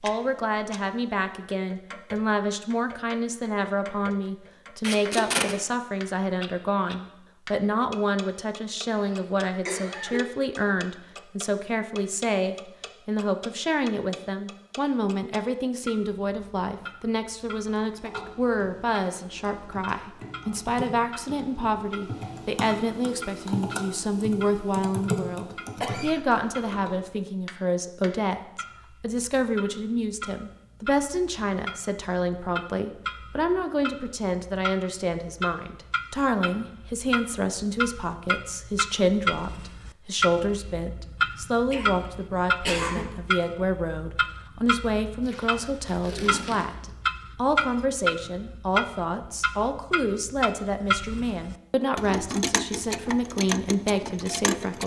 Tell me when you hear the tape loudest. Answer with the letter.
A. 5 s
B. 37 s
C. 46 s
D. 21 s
A.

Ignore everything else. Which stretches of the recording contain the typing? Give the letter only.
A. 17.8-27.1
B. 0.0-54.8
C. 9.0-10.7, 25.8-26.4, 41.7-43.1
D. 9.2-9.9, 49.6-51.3
A.